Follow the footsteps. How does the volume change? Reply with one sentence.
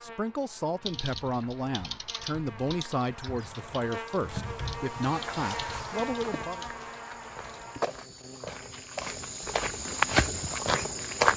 The volume of the footsteps goes up.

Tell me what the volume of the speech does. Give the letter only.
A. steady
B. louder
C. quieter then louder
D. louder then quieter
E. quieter
A.